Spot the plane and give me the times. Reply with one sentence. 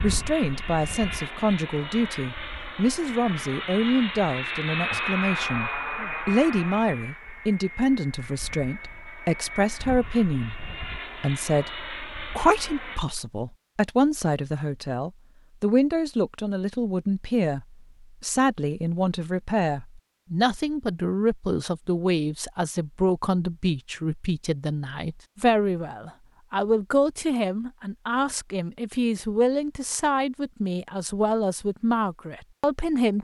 You can hear the plane from 0.0 to 13.0 s.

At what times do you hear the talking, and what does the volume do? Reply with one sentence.
The talking can be heard from 0.0 to 33.1 s, at a steady volume.